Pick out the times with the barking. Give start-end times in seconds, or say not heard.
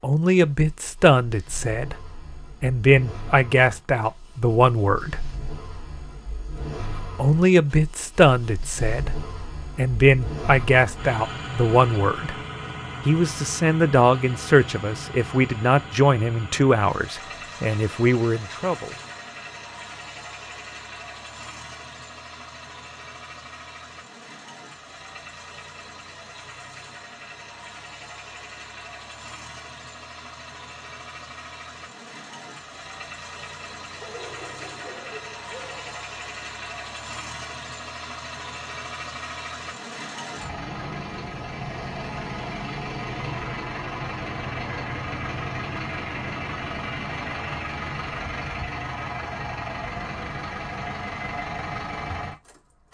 34.0-36.0.